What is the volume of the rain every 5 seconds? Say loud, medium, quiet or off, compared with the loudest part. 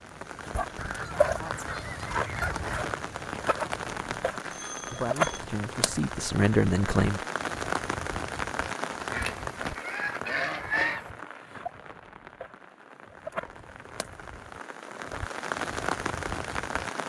loud, loud, medium, loud.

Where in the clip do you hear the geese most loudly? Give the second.
11 s.